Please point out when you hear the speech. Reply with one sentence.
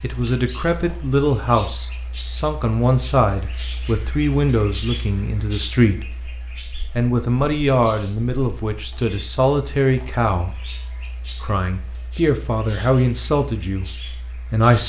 You can hear the speech from 0.0 to 6.1 s, from 7.0 to 10.6 s and from 11.4 to 14.8 s.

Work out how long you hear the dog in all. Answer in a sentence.
The dog can't be heard in this clip.